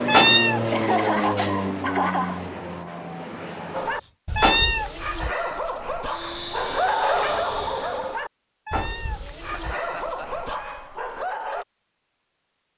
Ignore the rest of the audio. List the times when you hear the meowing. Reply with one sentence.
You can hear the meowing from 0.1 to 1.6 s, from 4.3 to 5.0 s and from 8.7 to 10.8 s.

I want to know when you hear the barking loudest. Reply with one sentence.
The loudest moment of the barking is at 7 seconds.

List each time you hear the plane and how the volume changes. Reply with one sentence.
The plane can be heard from 0.0 to 4.1 s, getting quieter; and briefly from 6.0 to 8.2 s.